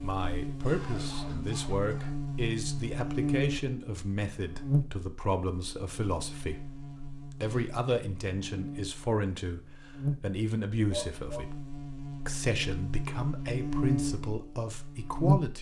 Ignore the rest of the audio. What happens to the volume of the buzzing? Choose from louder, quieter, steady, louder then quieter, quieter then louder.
quieter then louder.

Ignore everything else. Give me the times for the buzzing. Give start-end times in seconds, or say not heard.
0.0-15.5.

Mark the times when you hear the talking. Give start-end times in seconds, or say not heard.
0.0-11.6, 12.2-15.5.